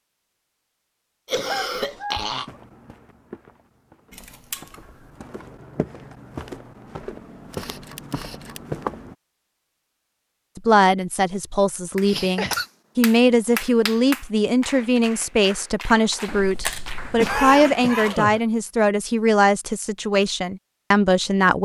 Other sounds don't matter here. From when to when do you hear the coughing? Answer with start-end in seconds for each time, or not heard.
1.2-2.5, 12.1-12.7, 17.1-18.4.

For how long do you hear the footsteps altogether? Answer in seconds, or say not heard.
7 s.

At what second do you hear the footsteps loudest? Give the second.
9 s.